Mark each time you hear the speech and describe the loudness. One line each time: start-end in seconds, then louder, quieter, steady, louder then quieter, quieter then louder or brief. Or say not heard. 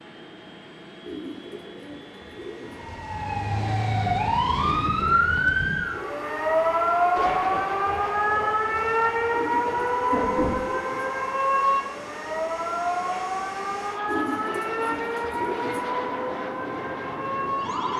not heard.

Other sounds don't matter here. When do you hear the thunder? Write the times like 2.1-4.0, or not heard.
7.2-10.7.